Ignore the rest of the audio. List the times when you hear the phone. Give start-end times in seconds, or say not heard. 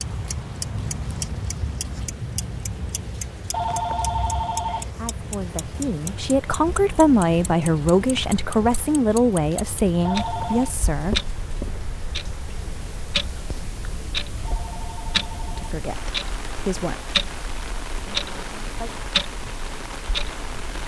3.5-4.9, 10.1-10.8, 14.4-15.6.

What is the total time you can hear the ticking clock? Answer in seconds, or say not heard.
21 s.